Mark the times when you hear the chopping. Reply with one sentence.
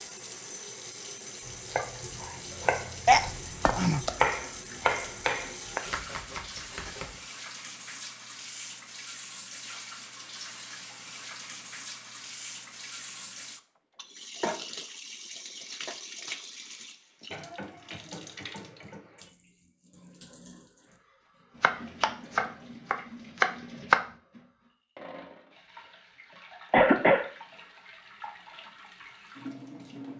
The chopping can be heard from 1.4 to 7.2 s and from 21.6 to 24.0 s.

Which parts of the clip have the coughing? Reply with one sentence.
You can hear the coughing from 3.0 to 4.1 s and from 26.7 to 27.2 s.